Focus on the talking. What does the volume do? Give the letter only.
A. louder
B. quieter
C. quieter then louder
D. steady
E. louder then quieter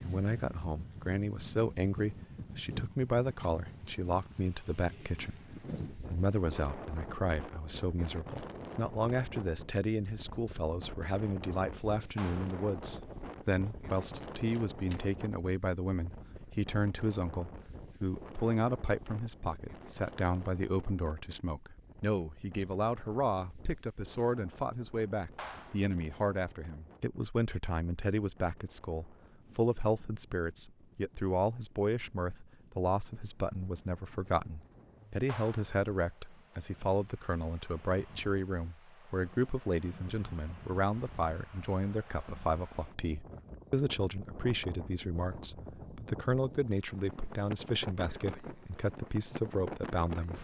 D.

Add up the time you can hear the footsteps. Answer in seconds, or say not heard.
not heard.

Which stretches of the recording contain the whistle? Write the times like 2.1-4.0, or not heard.
not heard.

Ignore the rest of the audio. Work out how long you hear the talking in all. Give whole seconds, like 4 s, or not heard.
50 s.